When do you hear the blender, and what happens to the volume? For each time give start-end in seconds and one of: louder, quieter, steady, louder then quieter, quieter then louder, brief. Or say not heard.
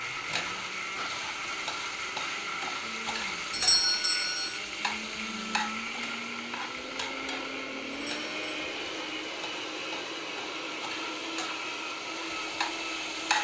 0.0-13.3 steady.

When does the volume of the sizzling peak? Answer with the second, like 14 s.
13 s.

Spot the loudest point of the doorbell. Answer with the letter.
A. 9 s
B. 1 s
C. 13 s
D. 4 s
D.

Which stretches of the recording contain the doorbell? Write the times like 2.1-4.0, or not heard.
3.5-4.6, 7.9-8.3.